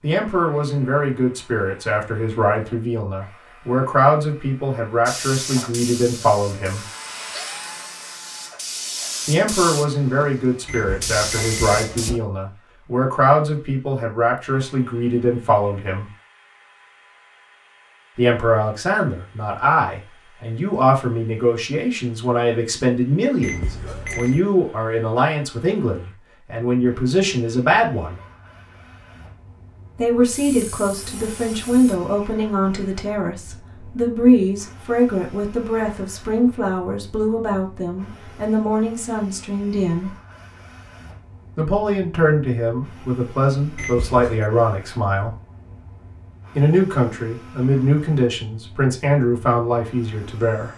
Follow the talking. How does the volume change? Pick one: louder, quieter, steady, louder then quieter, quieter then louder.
steady.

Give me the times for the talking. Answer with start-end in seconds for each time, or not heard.
0.0-6.8, 9.2-16.1, 18.1-28.2, 29.9-40.1, 41.5-45.3, 46.5-50.7.